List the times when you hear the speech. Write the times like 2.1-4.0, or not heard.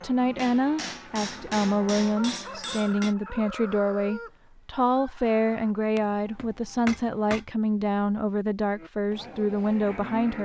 0.0-10.3.